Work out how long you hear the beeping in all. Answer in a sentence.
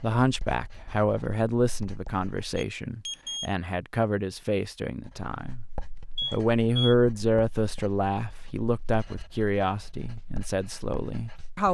You can hear the beeping for 2 seconds altogether.